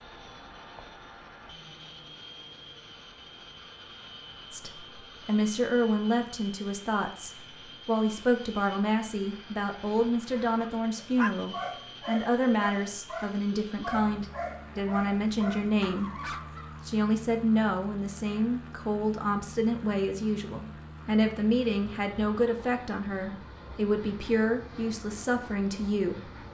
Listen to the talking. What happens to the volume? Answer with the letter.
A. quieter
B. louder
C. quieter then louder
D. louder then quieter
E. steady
E.